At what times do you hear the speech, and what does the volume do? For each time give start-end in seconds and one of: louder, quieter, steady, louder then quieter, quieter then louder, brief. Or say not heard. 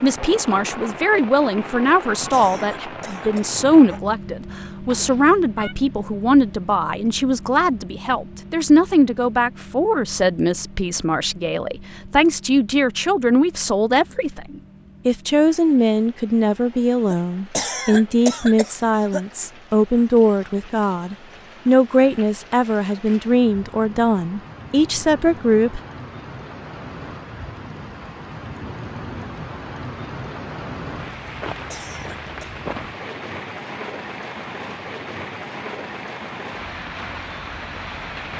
0.0-25.8 steady.